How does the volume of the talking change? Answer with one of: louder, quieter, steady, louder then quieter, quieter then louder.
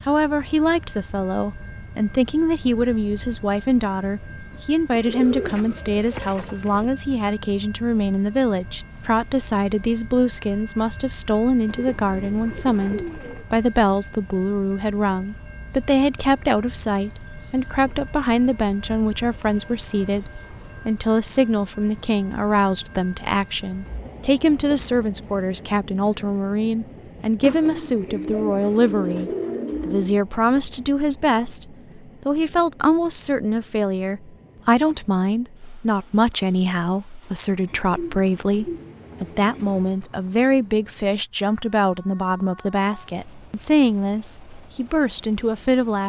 steady.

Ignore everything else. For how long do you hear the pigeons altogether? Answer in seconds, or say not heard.
9 s.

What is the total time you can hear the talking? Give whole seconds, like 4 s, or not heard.
46 s.